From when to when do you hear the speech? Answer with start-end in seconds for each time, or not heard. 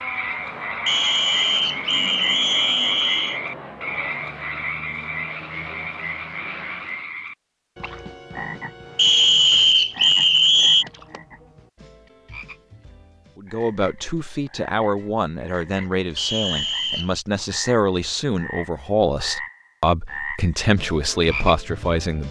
13.3-22.2.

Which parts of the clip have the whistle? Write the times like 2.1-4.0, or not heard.
0.8-3.4, 8.9-10.8, 16.1-17.2.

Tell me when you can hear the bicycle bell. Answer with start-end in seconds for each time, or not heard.
not heard.